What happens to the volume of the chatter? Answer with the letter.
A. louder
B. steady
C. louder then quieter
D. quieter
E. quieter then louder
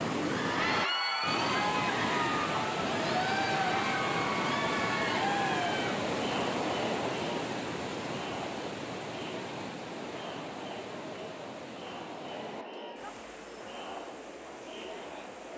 D.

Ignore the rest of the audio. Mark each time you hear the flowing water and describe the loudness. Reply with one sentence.
The flowing water can be heard from 0.0 to 15.5 s, getting quieter.